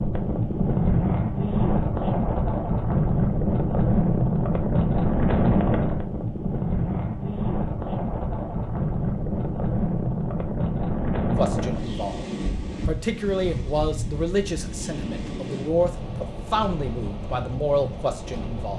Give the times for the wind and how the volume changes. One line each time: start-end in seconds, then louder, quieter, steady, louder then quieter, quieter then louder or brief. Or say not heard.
0.0-18.7 quieter.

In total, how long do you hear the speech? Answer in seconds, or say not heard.
7 s.